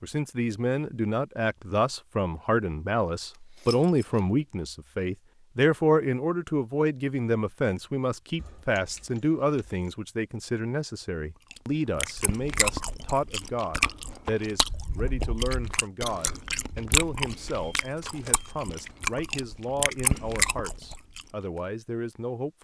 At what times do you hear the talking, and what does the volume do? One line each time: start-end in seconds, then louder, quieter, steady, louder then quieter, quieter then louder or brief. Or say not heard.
0.0-22.6 quieter.